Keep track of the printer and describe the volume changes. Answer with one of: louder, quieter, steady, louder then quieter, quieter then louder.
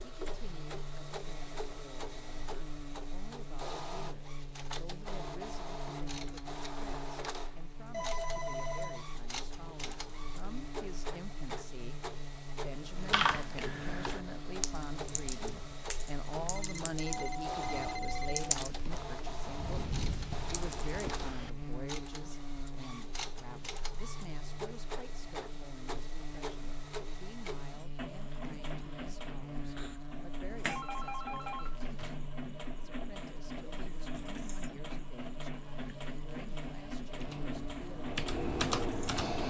steady.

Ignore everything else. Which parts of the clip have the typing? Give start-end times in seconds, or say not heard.
12.9-21.7, 37.1-39.4.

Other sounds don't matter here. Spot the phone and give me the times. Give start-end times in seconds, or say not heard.
7.9-9.1, 16.5-18.6, 30.5-32.1.